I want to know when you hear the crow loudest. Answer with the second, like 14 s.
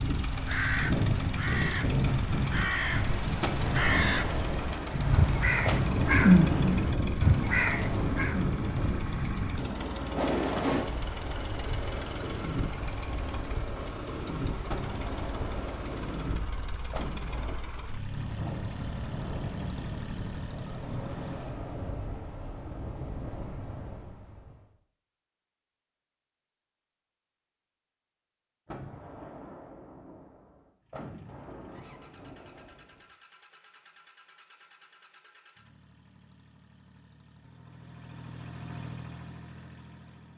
6 s.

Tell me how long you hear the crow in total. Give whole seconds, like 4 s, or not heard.
8 s.